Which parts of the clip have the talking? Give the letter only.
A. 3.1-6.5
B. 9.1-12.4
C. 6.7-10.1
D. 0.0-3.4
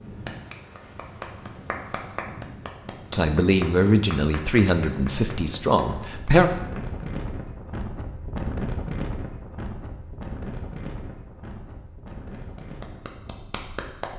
A.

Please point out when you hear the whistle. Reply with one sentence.
You can't hear the whistle here.